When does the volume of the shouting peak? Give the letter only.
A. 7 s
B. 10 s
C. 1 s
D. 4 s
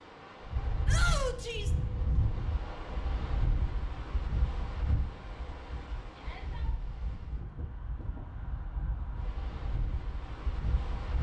C.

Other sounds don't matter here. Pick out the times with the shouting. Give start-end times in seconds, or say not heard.
0.8-1.8, 6.2-6.8.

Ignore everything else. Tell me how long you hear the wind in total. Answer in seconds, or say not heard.
11 s.